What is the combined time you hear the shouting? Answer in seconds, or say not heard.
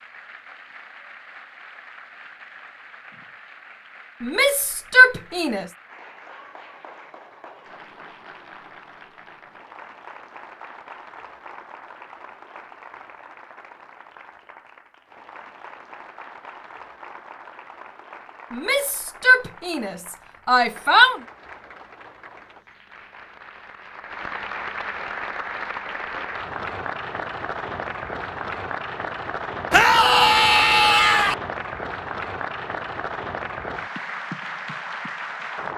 6 s.